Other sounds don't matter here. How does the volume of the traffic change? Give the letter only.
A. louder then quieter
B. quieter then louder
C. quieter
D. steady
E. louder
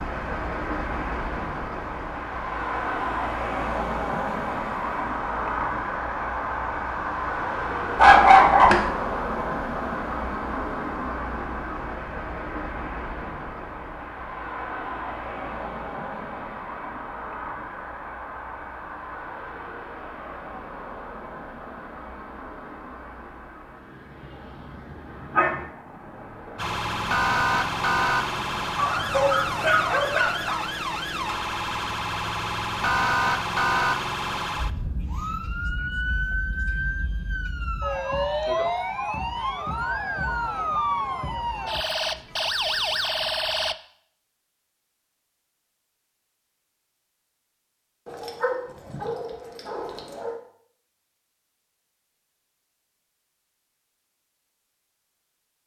C.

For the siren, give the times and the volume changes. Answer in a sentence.
The siren can be heard from 26.6 to 43.8 s, at a steady volume.